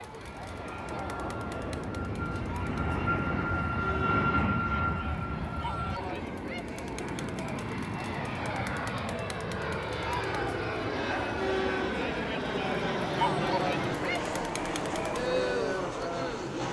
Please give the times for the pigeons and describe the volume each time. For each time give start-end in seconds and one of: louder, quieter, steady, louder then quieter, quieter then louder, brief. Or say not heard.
not heard.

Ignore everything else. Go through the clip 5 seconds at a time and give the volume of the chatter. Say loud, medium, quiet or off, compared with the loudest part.
medium, medium, loud, loud.